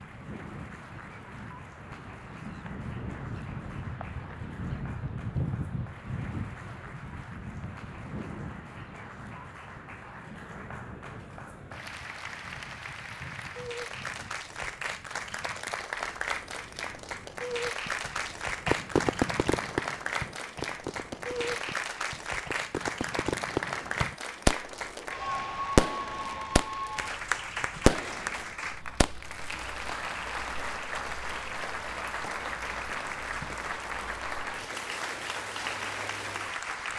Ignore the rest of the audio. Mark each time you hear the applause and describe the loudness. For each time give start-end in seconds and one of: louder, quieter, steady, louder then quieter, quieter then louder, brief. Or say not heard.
0.0-36.9 louder.